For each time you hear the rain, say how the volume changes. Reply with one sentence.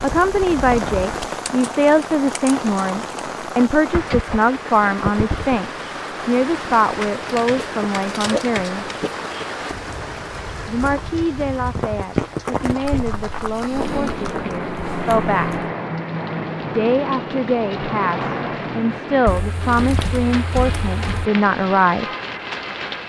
The rain can be heard from 0.0 to 23.0 s, at a steady volume.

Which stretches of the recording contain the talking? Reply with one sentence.
The talking can be heard from 0.0 to 8.9 s, from 10.7 to 15.7 s and from 16.7 to 22.1 s.